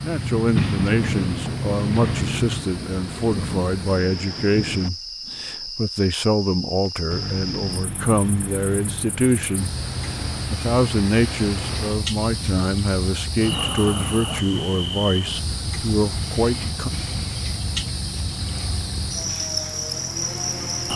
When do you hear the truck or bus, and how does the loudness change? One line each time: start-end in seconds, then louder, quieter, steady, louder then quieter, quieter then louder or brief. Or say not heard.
0.0-2.6 brief
7.1-20.9 steady.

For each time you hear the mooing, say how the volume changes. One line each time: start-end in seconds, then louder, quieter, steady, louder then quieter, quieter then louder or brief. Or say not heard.
not heard.